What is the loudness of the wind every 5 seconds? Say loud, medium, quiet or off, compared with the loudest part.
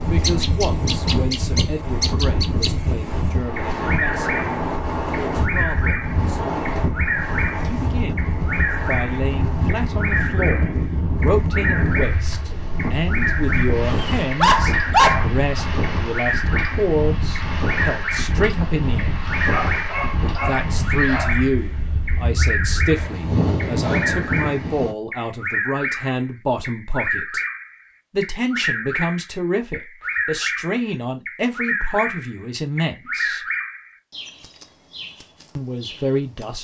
loud, loud, loud, loud, loud, off, off, off.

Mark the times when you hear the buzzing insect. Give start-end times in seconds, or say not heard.
not heard.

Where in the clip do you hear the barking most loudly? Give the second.
15 s.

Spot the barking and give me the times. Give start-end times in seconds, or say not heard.
13.4-15.7, 19.4-21.4.